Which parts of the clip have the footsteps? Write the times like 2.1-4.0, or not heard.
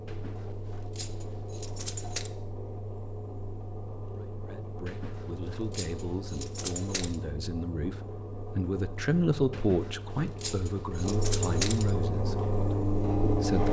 not heard.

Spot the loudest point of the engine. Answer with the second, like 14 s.
13 s.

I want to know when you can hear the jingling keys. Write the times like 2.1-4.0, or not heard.
0.1-2.3, 4.8-7.2, 9.5-11.9.